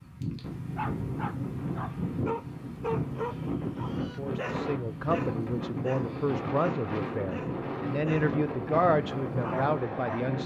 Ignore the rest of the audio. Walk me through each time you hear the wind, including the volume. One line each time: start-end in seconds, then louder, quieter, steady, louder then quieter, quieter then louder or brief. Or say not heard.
0.0-10.4 steady.